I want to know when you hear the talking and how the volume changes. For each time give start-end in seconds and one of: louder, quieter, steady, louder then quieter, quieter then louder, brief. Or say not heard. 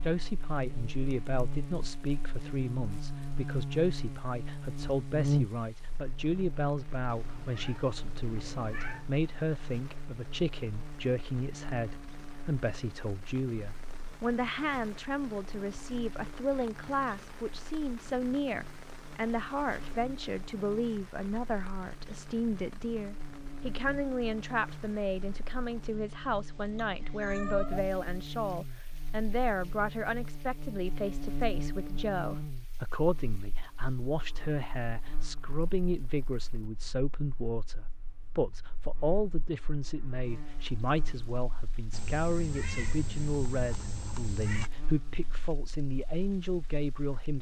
0.0-47.3 steady.